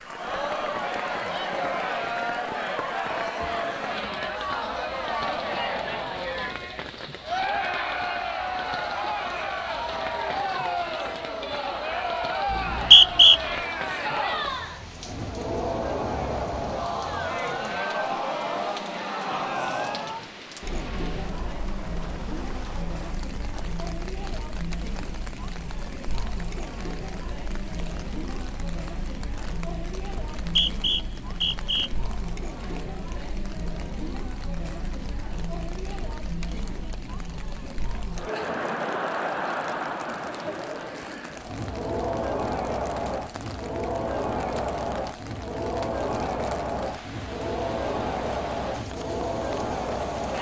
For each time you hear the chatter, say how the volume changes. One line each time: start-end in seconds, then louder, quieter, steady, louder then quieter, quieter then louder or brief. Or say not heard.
0.0-50.3 quieter then louder.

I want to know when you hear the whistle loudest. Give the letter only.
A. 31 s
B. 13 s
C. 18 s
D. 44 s
B.